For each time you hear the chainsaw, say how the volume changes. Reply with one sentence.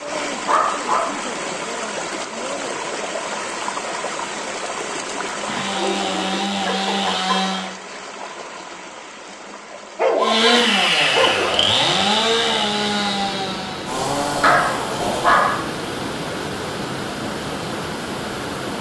You can hear the chainsaw briefly from 5.4 to 7.7 s; and from 10.2 to 15.4 s, getting quieter.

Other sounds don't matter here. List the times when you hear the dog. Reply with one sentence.
The dog can be heard from 0.1 to 1.4 s, from 5.5 to 7.4 s, from 9.9 to 11.6 s and from 14.4 to 15.7 s.